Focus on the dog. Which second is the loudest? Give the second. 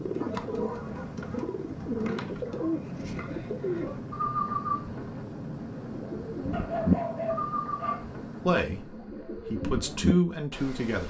7 s.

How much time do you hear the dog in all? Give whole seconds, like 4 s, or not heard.
4 s.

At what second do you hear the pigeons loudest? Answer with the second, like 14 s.
7 s.